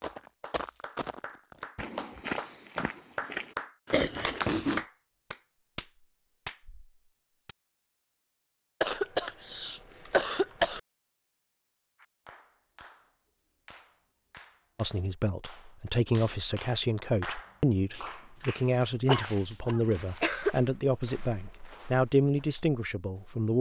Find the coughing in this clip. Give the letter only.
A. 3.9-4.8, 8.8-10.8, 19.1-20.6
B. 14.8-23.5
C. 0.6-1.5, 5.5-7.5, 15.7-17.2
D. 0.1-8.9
A.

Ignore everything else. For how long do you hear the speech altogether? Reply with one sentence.
You can hear the speech for 9 seconds altogether.